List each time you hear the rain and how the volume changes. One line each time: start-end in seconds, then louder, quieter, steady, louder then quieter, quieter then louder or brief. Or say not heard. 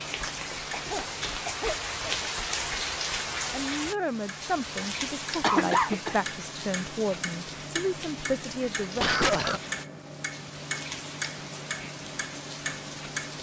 0.0-13.3 quieter.